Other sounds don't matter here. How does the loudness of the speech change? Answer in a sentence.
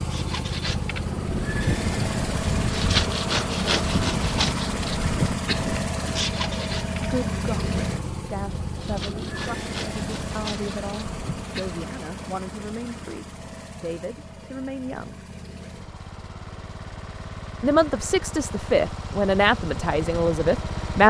The volume of the speech goes up.